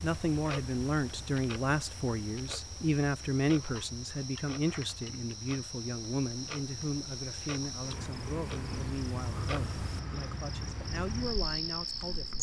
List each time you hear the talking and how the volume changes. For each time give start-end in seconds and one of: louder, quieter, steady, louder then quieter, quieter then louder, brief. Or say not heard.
0.0-12.3 quieter.